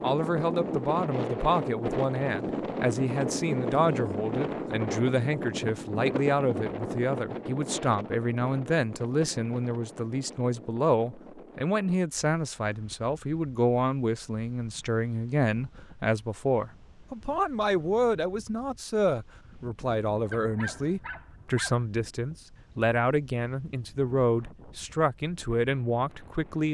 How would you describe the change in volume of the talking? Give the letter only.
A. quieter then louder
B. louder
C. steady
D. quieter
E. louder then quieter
C.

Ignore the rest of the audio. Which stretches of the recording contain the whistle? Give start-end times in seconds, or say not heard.
not heard.